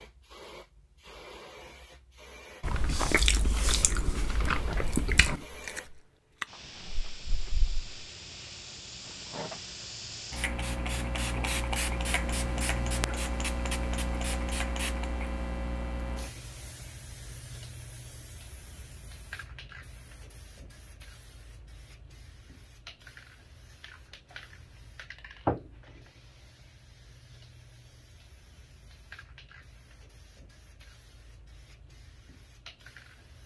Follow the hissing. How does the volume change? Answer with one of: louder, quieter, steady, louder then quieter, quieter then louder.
louder then quieter.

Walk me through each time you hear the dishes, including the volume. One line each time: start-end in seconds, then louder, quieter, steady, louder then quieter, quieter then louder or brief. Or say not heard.
not heard.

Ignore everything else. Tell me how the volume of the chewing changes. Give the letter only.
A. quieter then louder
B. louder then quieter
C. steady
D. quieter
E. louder
D.